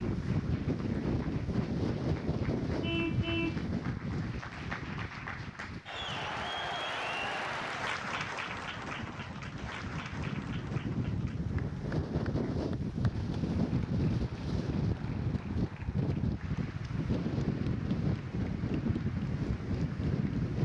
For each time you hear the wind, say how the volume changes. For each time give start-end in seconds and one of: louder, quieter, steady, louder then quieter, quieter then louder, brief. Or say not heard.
0.0-20.6 quieter then louder.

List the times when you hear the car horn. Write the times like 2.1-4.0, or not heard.
2.8-3.6.